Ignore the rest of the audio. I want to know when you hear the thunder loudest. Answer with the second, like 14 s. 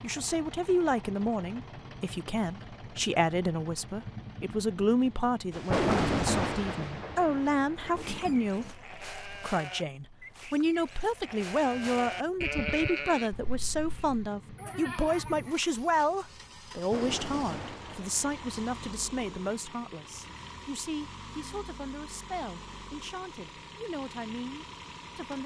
6 s.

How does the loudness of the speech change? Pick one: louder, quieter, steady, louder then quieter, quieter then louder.
quieter.